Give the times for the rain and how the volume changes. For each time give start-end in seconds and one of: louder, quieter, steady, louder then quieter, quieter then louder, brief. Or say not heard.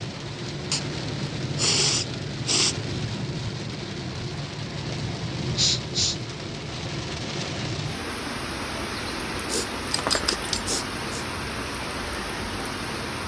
0.0-13.2 steady.